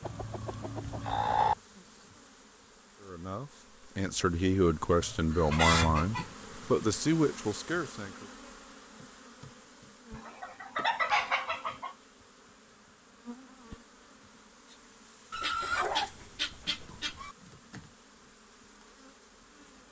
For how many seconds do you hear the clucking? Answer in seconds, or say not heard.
7 s.